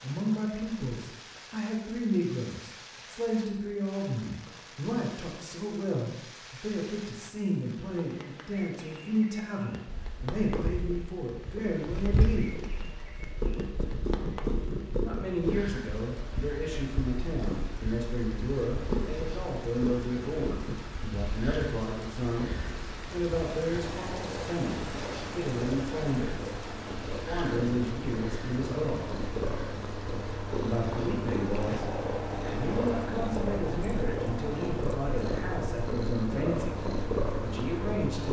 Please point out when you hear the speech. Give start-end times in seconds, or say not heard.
0.0-12.6, 15.0-22.5, 23.1-26.5, 27.1-29.1, 30.6-38.2.